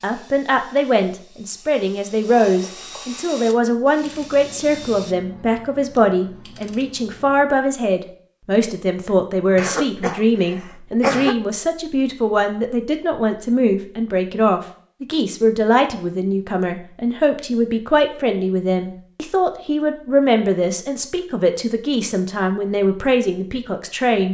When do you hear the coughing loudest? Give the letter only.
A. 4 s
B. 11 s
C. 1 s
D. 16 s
B.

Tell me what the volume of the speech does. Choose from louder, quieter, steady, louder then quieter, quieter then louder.
steady.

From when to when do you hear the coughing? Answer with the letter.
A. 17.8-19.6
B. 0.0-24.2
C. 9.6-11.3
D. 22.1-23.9
C.